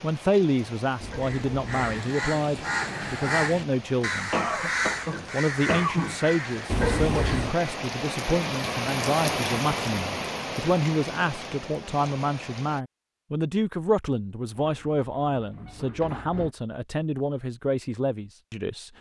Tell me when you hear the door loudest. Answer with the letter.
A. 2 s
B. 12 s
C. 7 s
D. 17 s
C.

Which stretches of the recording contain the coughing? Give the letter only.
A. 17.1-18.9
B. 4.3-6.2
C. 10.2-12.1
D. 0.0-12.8
B.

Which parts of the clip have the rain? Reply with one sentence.
You can hear the rain from 0.0 to 12.8 s.